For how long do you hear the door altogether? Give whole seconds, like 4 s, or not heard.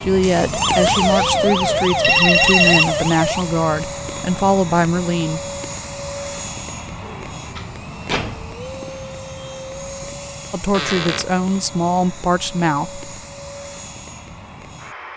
3 s.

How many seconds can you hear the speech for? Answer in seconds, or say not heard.
8 s.